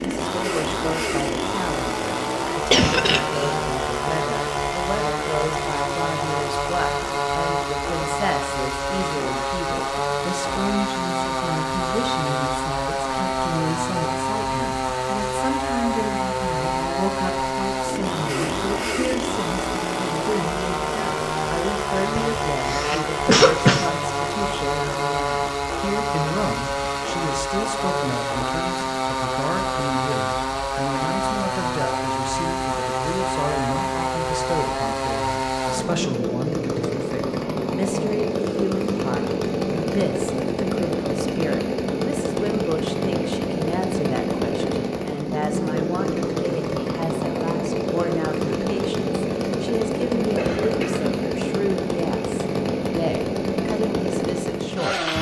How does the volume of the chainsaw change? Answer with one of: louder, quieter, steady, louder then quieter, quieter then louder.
steady.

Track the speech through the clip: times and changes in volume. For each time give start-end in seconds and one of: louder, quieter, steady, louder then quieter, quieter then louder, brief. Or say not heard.
0.0-55.0 steady.